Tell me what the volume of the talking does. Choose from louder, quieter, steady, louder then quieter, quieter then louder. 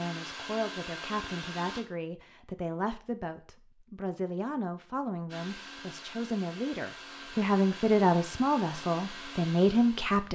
louder.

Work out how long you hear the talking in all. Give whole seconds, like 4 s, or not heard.
10 s.